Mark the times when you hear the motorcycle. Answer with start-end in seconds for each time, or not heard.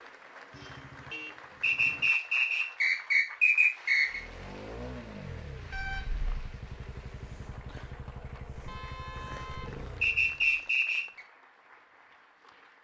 4.0-10.5.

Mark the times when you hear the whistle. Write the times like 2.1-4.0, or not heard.
1.6-4.2, 10.0-11.2.